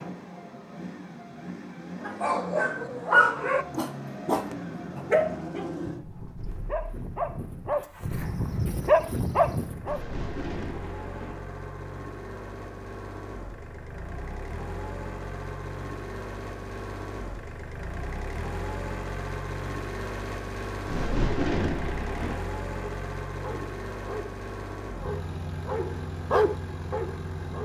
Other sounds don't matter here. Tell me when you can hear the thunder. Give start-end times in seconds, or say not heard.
9.8-11.4, 20.9-22.4.